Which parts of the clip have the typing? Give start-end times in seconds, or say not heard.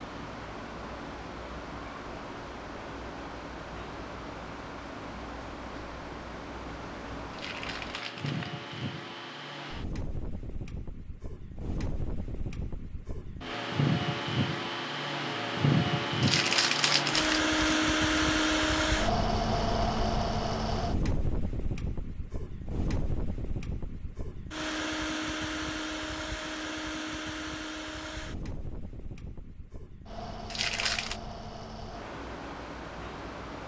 not heard.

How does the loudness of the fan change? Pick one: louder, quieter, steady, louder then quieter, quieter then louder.
louder then quieter.